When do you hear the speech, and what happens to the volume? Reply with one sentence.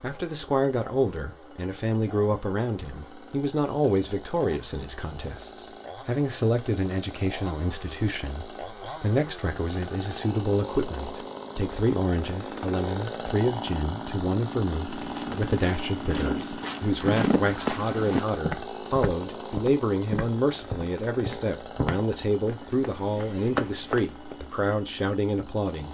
The speech can be heard from 0.0 to 25.8 s, at a steady volume.